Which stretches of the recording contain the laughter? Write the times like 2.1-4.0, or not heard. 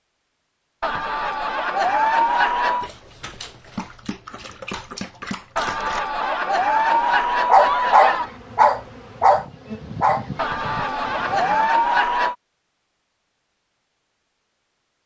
0.8-2.9, 5.5-8.3, 10.3-12.3.